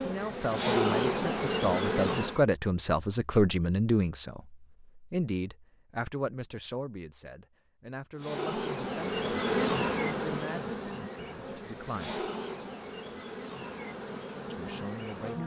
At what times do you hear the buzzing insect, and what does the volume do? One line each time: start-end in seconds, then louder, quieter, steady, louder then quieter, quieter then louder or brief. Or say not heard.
0.0-2.4 brief
8.2-15.4 quieter.